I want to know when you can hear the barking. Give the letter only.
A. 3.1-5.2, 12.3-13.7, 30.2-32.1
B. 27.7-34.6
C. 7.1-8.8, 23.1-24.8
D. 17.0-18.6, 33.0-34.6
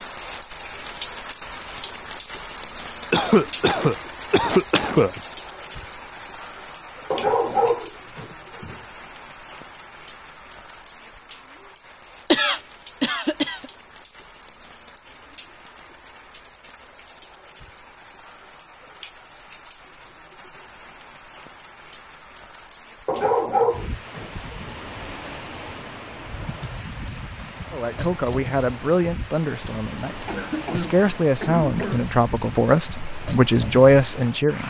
C.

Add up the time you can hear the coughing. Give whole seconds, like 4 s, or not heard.
5 s.